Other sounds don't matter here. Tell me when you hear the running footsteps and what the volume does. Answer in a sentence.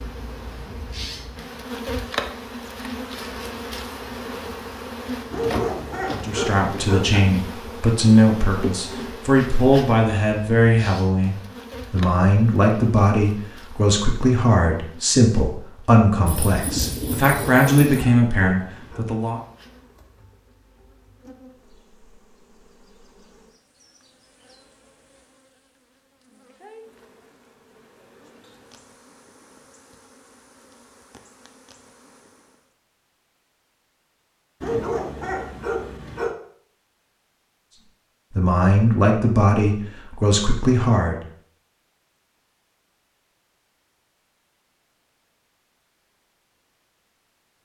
The running footsteps can't be heard in this clip.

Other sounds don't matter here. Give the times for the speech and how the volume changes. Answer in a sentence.
You can hear the speech from 6.1 to 19.4 s, at a steady volume; and briefly from 38.4 to 41.2 s.